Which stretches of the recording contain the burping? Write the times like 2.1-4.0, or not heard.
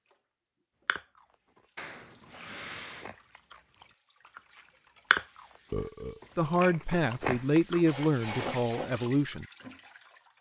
1.8-3.1, 5.7-6.2.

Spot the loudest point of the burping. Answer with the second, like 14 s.
6 s.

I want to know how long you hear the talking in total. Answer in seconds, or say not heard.
3 s.